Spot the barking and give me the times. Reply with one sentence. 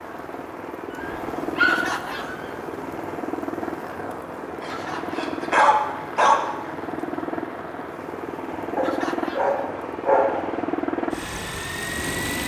You can hear the barking from 1.0 to 2.4 s, from 4.6 to 6.5 s and from 8.8 to 10.4 s.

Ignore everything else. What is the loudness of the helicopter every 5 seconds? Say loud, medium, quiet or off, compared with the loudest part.
medium, loud, loud.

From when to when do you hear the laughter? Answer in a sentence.
The laughter can be heard from 1.6 to 2.4 s, from 4.7 to 5.2 s and from 8.8 to 9.6 s.